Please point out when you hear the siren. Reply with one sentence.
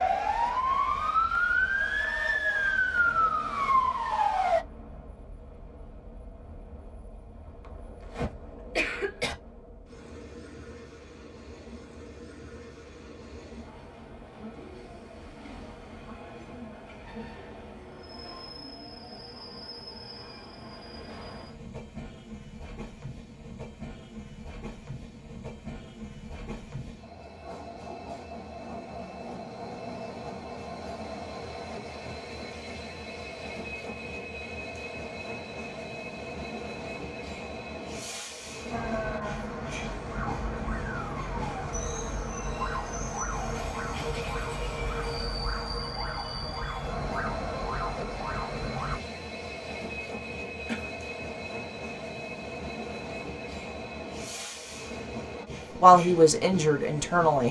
You can hear the siren from 0.0 to 4.7 s and from 38.7 to 49.0 s.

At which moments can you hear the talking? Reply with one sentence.
The talking can be heard from 55.8 to 57.4 s.